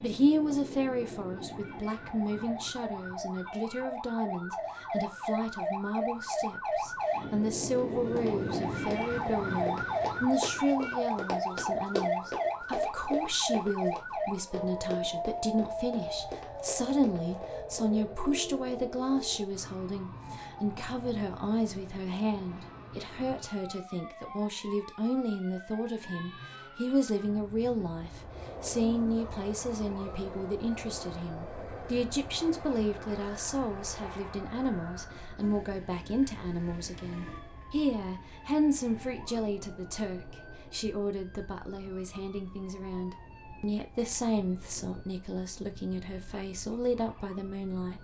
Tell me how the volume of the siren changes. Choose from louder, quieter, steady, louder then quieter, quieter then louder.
quieter.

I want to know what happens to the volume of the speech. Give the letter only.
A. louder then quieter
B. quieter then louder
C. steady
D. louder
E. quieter
C.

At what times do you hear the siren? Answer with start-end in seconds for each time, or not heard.
0.0-48.0.